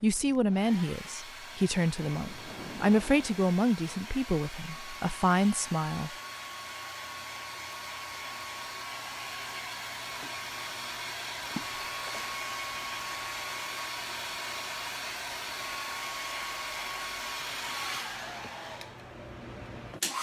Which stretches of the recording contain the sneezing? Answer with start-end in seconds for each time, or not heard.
not heard.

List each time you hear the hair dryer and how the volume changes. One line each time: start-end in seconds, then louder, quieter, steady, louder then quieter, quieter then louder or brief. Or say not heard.
0.0-20.1 louder.